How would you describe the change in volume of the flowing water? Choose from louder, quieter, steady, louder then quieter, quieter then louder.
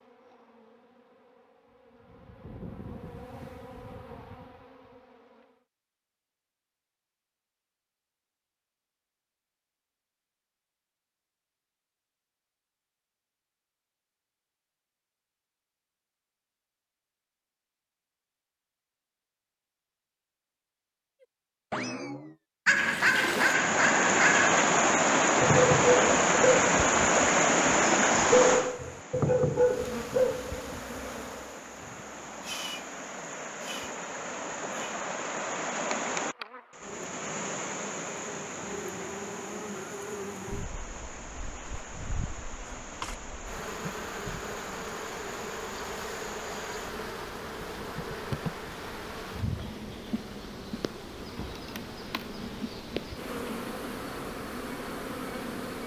quieter.